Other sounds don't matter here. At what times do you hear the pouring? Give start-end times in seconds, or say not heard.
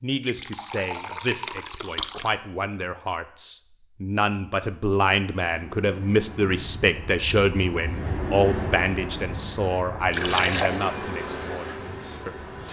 0.2-2.3, 10.1-10.8.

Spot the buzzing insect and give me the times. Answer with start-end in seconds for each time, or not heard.
10.1-12.6.